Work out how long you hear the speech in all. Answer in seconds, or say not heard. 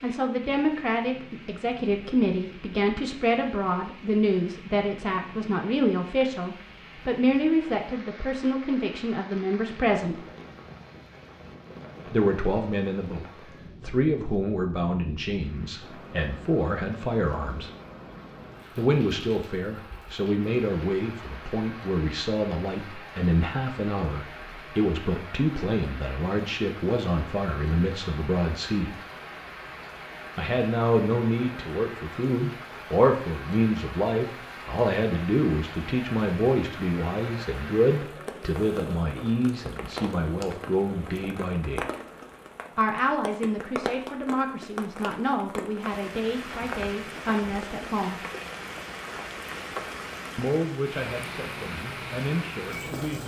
46 s.